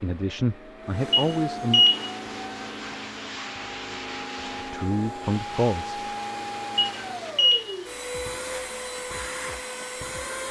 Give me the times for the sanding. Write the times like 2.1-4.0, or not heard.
1.9-7.3.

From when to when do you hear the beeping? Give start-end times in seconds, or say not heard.
1.1-2.1, 6.8-7.8.